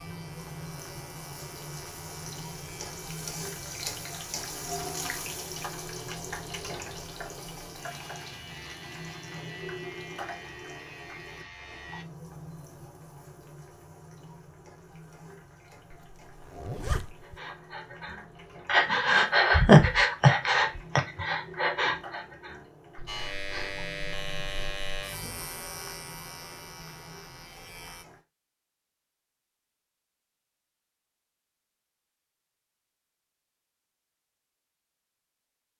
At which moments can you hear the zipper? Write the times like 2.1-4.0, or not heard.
15.9-17.4.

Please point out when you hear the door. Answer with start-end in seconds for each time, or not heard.
not heard.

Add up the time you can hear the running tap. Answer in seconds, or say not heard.
28 s.